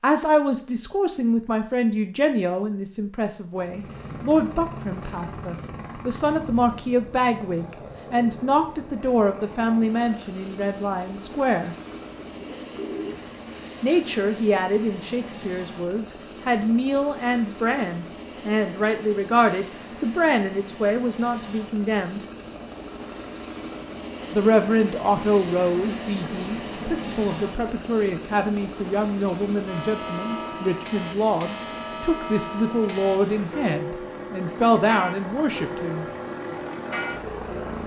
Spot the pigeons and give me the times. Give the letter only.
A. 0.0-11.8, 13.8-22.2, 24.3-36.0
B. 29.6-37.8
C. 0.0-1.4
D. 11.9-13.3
D.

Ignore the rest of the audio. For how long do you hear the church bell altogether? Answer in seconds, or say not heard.
8 s.